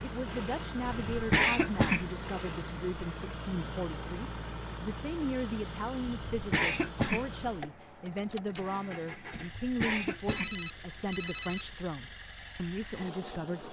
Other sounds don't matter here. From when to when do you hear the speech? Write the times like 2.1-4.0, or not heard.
0.0-13.6.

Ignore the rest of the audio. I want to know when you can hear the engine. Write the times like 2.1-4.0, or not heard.
0.0-13.6.